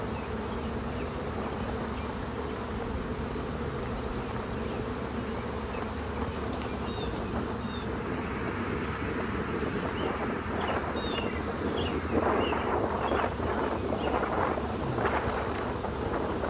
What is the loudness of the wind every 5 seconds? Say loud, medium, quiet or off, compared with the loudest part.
medium, medium, loud, loud.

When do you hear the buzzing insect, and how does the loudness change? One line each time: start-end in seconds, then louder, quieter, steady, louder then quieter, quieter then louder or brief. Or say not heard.
0.0-16.4 steady.